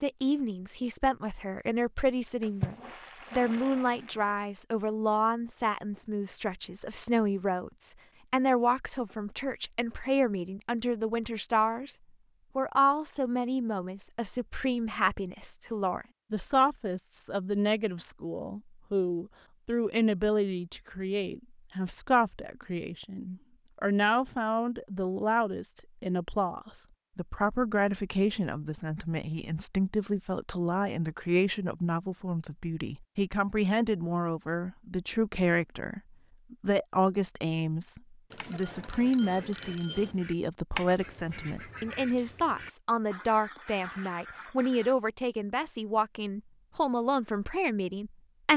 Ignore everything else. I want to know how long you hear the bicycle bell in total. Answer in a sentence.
The bicycle bell can be heard for 2 seconds in total.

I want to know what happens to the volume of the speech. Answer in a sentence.
The loudness of the speech stays about the same.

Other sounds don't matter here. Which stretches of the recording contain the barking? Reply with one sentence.
The barking can't be heard in this clip.